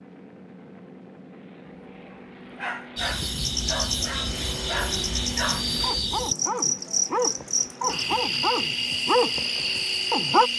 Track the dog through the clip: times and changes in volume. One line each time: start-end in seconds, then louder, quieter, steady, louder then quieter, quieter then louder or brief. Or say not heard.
1.6-10.5 louder.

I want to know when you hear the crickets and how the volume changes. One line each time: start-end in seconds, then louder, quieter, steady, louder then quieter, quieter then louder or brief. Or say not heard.
3.0-10.5 steady.